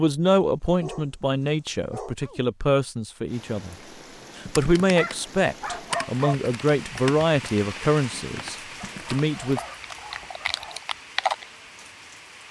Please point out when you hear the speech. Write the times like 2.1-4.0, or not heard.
0.0-3.8, 4.3-9.6.